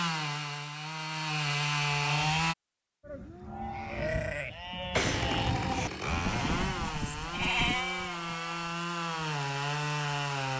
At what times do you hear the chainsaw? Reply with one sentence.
The chainsaw can be heard from 0.0 to 2.5 s and from 4.9 to 10.5 s.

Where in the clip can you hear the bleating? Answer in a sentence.
The bleating can be heard from 3.0 to 8.7 s.